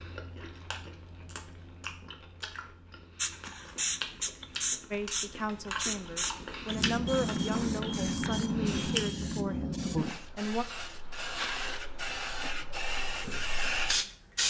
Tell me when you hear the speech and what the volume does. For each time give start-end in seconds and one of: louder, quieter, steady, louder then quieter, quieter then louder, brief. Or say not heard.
4.9-10.7 louder then quieter.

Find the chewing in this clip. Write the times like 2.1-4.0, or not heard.
0.0-9.1.